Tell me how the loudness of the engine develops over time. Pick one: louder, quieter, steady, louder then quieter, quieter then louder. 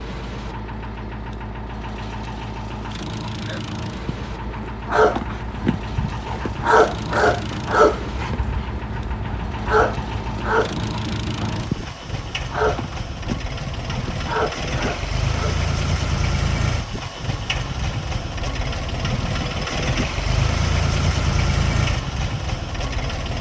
louder.